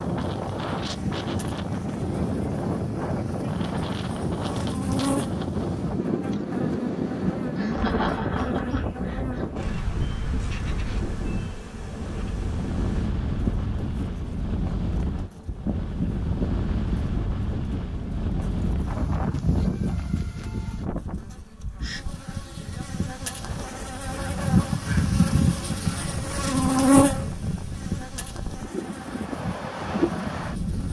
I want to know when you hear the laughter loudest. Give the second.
8 s.